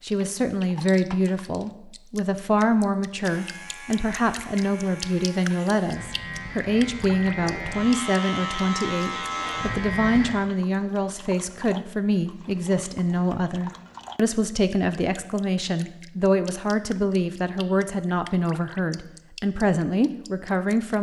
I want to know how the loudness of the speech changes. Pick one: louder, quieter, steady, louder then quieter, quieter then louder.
steady.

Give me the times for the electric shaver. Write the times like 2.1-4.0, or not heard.
3.2-10.3.